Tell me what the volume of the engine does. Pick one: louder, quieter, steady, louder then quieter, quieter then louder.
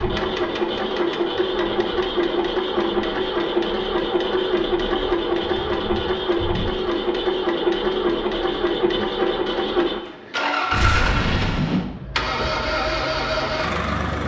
steady.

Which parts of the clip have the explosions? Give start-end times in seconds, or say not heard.
10.7-11.6.